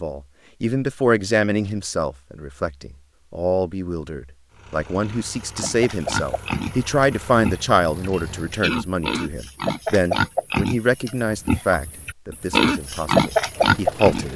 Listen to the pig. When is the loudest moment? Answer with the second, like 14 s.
13 s.